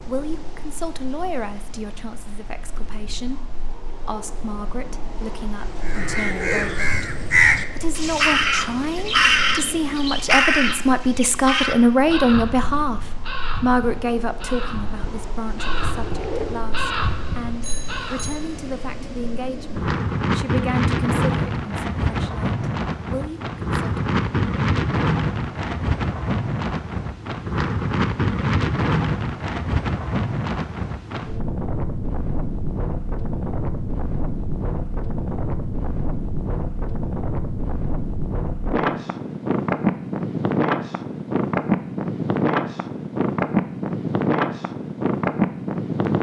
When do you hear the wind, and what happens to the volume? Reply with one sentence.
You can hear the wind from 0.0 to 46.1 s, getting louder.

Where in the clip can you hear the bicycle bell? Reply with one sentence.
The bicycle bell can be heard from 17.6 to 18.6 s.